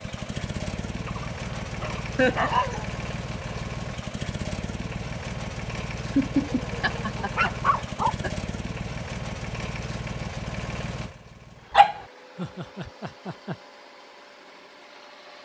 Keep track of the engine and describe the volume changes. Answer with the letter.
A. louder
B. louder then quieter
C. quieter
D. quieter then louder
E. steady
C.